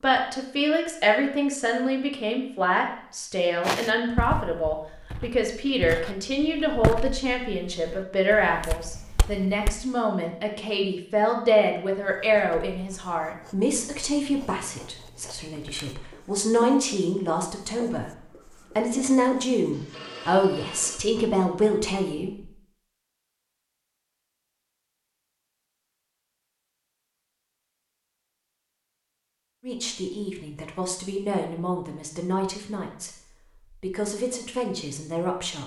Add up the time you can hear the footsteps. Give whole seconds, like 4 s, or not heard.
6 s.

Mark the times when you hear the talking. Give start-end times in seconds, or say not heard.
0.0-22.5, 29.6-35.6.